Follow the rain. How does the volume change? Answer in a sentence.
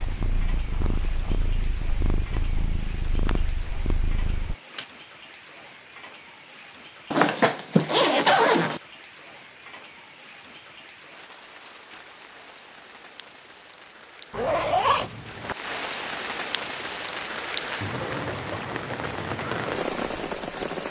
The loudness of the rain goes up.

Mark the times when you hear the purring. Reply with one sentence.
The purring can be heard from 0.0 to 4.5 s.